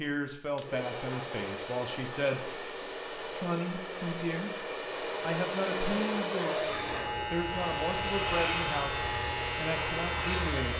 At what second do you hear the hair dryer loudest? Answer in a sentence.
The volume of the hair dryer peaks at 6 seconds.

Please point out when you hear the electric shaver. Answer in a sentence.
You can hear the electric shaver from 6.6 to 10.7 s.